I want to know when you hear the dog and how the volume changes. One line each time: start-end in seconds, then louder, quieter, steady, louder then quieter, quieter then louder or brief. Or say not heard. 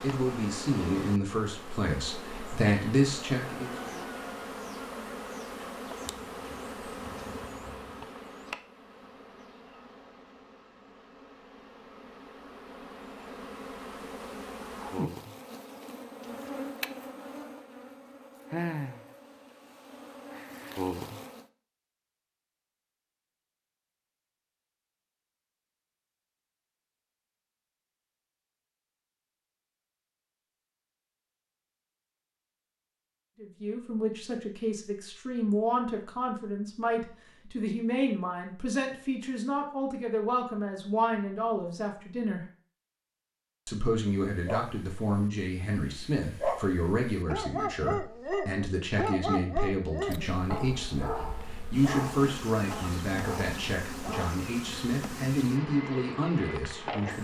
44.1-54.4 louder then quieter.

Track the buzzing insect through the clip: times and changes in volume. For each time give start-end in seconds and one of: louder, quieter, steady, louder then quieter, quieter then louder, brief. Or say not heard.
0.0-21.4 quieter then louder
50.0-57.1 louder.